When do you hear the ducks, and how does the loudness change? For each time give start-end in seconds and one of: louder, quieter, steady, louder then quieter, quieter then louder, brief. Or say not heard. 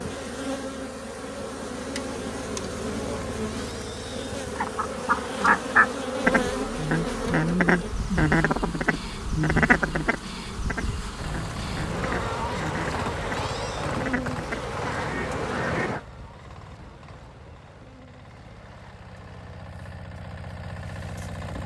4.5-16.0 quieter.